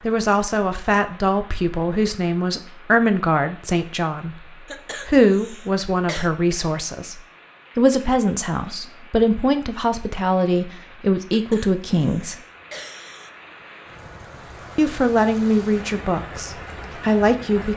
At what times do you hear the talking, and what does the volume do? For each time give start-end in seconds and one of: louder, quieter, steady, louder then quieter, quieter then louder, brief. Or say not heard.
0.0-12.3 steady
14.8-17.7 brief.